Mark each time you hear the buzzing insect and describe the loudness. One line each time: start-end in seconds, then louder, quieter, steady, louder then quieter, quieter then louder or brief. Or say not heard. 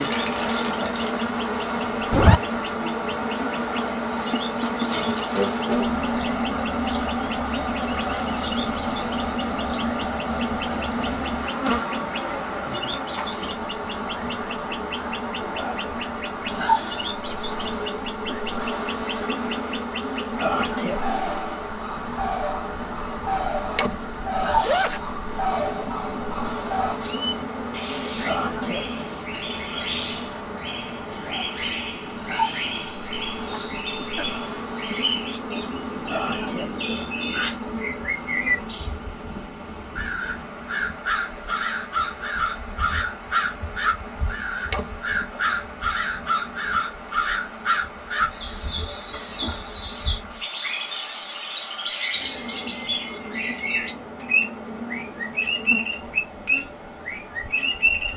0.0-58.1 quieter.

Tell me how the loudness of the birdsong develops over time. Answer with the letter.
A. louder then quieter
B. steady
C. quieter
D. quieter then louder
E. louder
E.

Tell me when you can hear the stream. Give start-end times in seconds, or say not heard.
0.0-58.1.